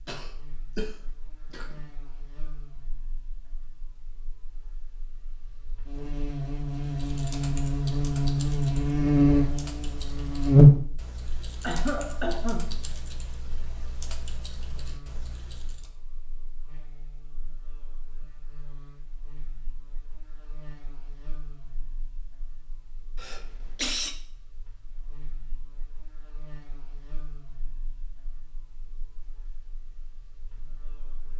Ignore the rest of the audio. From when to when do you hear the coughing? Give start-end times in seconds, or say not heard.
0.1-1.8, 11.6-12.8, 23.1-24.1.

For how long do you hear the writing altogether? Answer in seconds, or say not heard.
not heard.